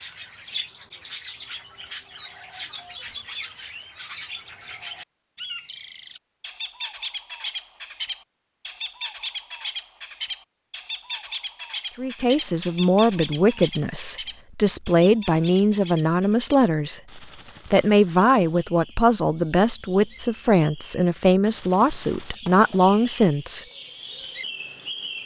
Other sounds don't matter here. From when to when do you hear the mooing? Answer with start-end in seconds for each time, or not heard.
not heard.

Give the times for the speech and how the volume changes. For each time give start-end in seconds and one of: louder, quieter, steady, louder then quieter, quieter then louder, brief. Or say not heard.
11.9-23.6 steady.